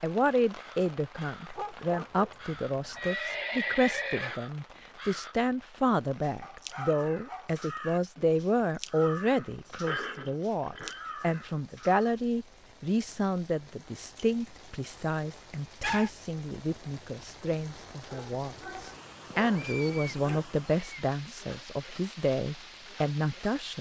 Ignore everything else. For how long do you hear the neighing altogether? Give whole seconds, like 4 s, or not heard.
4 s.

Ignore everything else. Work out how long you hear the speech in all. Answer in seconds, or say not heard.
24 s.